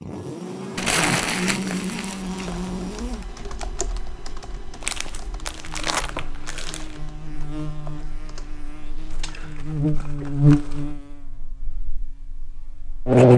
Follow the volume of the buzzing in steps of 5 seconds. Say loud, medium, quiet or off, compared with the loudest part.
medium, quiet, loud.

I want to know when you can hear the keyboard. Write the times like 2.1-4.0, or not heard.
2.2-9.7.